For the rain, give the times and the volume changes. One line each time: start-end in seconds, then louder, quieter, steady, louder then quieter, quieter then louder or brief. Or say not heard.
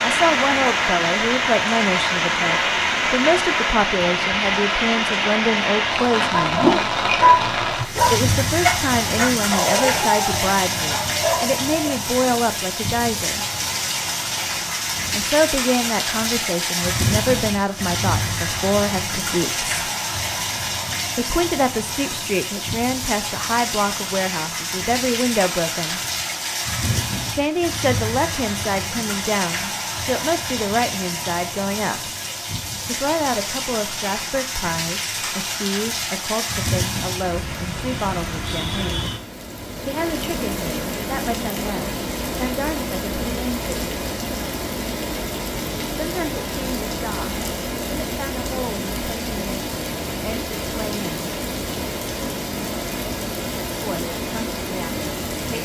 0.0-55.6 quieter.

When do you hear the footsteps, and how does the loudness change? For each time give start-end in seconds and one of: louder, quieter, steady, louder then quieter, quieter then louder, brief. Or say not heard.
not heard.